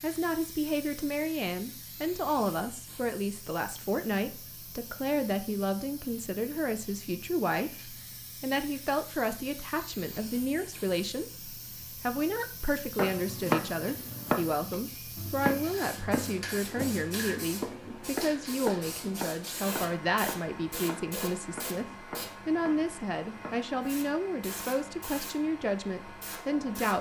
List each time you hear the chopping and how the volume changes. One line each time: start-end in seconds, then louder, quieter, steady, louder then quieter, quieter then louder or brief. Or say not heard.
12.9-23.7 quieter.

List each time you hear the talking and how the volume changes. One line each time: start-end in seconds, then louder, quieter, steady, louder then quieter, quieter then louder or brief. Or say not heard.
0.0-26.9 steady.